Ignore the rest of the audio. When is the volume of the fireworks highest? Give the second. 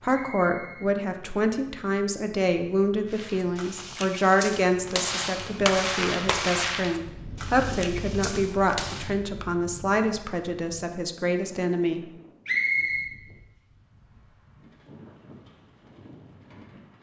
6 s.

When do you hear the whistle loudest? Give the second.
13 s.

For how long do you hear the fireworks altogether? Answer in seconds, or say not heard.
6 s.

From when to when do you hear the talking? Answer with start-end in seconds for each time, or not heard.
0.0-12.1.